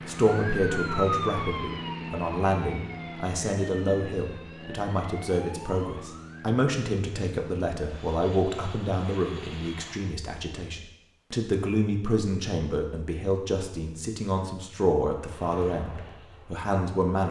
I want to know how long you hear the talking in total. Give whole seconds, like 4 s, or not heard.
17 s.